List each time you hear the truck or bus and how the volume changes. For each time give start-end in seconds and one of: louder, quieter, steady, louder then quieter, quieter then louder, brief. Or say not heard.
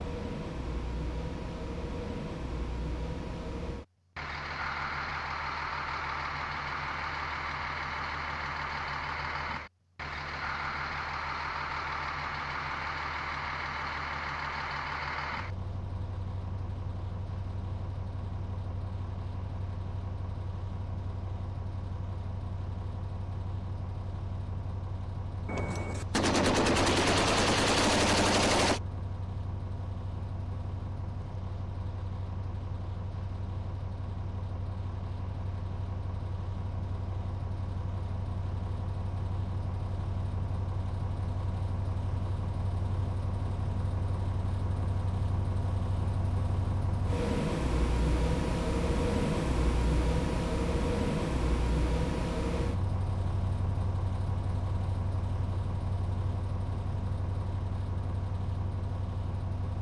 0.0-59.7 quieter then louder.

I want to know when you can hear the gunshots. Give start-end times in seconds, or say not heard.
25.4-28.8.